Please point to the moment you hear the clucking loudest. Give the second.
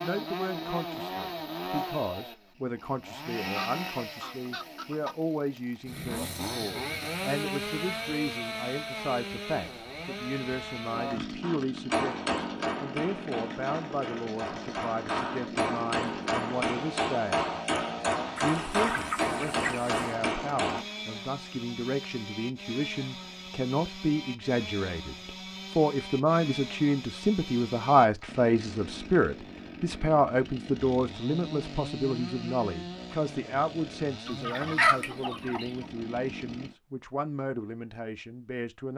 35 s.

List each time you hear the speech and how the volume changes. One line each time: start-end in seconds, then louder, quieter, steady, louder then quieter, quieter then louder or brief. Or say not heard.
0.0-17.5 steady
18.4-38.9 louder then quieter.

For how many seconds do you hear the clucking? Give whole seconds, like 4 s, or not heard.
5 s.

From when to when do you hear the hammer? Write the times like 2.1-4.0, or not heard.
11.4-20.9.